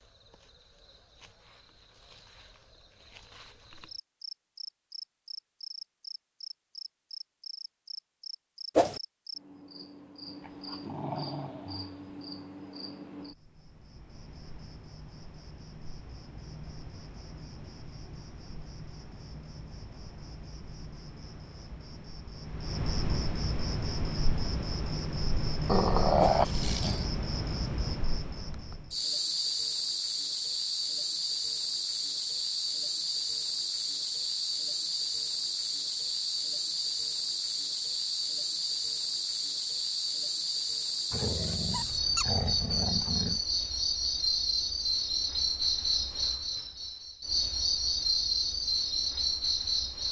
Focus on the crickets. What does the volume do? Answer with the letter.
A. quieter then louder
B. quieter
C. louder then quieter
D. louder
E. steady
D.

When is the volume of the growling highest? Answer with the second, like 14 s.
26 s.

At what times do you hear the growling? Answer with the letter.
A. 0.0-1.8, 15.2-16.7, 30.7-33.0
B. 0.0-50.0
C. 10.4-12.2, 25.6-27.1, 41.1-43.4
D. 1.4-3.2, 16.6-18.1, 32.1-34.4
C.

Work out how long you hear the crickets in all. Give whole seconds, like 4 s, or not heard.
50 s.